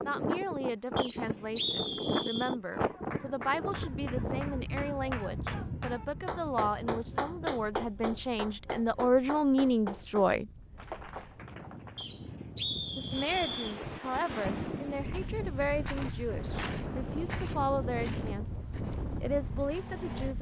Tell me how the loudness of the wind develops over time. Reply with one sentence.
The loudness of the wind goes down, then up.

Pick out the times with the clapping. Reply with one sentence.
You can hear the clapping from 2.7 to 12.1 s.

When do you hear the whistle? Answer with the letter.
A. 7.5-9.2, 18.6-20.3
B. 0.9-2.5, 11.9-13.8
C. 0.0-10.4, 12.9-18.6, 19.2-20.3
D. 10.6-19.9
B.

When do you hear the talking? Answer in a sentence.
You can hear the talking from 0.0 to 10.4 s, from 12.9 to 18.6 s and from 19.2 to 20.3 s.